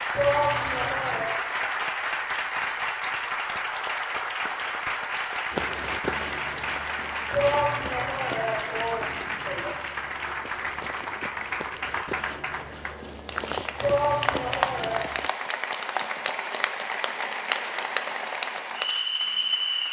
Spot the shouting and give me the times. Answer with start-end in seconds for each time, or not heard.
0.1-1.3, 7.3-9.8, 13.8-15.1.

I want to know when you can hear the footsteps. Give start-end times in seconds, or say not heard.
5.5-15.3.